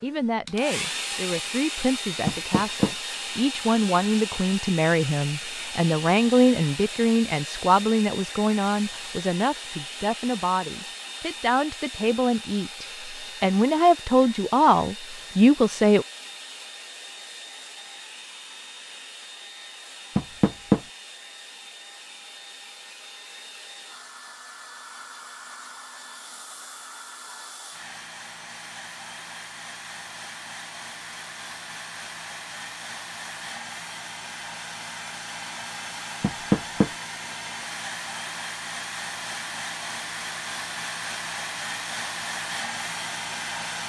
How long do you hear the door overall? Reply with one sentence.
You can hear the door for 2 seconds altogether.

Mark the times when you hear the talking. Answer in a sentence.
The talking can be heard from 0.0 to 16.1 s.